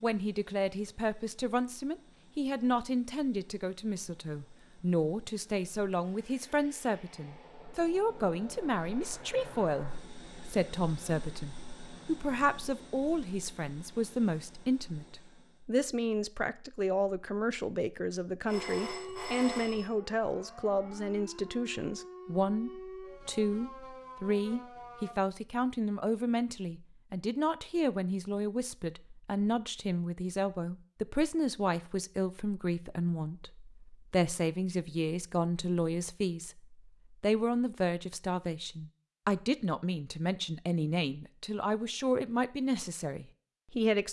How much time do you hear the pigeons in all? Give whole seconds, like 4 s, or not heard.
not heard.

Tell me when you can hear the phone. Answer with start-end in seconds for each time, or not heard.
18.4-19.9.